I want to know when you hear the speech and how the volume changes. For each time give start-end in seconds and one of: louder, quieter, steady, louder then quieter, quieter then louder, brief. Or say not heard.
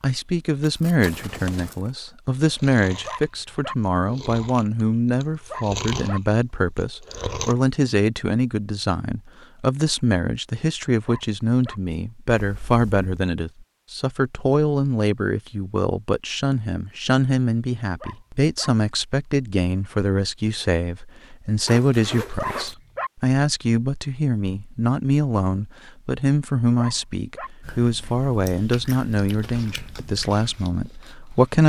0.0-31.6 steady.